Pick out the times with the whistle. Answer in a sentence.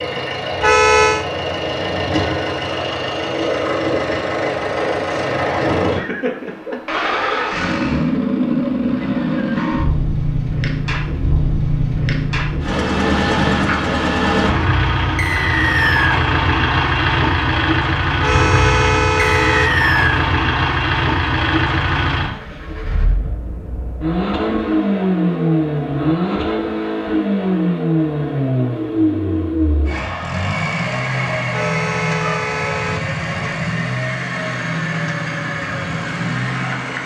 The whistle can be heard from 15.2 to 16.2 s and from 19.4 to 20.2 s.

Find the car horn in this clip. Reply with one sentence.
The car horn can be heard from 0.6 to 1.2 s, from 18.2 to 19.8 s and from 31.5 to 33.1 s.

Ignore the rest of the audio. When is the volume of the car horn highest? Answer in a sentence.
The volume of the car horn peaks at 1 second.